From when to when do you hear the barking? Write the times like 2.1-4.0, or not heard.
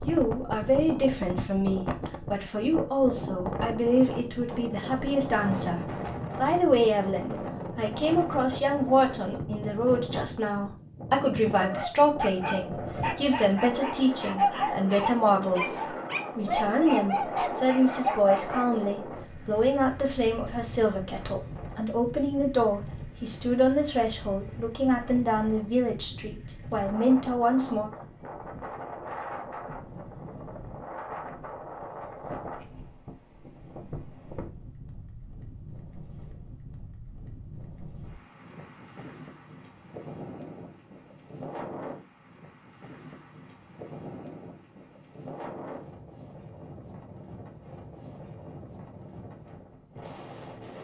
11.6-18.9.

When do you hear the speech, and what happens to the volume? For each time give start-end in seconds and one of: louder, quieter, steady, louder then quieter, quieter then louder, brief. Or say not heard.
0.0-27.9 steady.